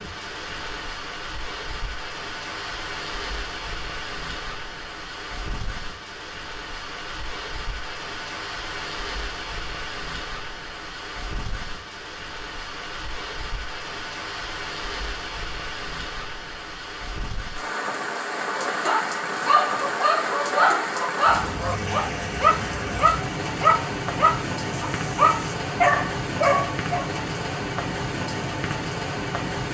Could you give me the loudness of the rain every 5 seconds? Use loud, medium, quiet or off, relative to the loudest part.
medium, medium, medium, loud, loud, loud.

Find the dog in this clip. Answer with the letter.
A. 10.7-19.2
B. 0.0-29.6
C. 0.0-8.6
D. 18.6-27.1
D.